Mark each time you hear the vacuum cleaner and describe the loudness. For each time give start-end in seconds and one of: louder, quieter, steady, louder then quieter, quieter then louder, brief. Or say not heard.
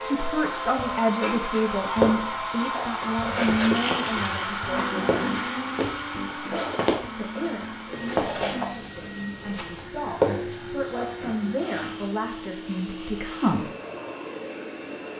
0.0-15.1 quieter.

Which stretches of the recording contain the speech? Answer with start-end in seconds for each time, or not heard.
0.0-5.5, 7.2-13.7.